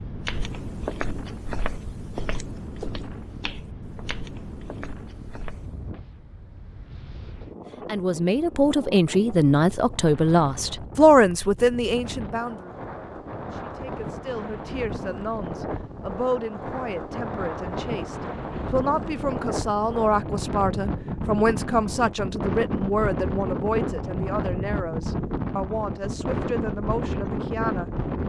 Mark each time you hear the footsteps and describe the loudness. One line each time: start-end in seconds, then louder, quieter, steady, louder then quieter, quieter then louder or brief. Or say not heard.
0.2-5.8 quieter.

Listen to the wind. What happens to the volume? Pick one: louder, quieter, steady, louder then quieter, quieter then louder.
louder.